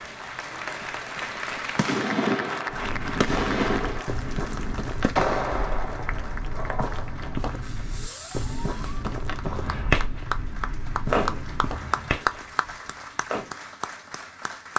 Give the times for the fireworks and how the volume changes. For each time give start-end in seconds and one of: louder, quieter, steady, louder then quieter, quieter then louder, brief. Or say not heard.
1.4-13.5 quieter then louder.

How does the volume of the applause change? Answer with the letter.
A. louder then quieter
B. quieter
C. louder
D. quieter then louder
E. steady
D.